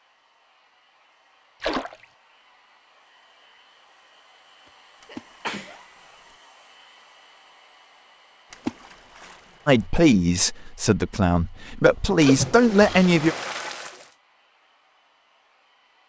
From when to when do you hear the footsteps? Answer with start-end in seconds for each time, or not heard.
not heard.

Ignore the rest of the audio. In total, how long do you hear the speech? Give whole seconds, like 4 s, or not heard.
4 s.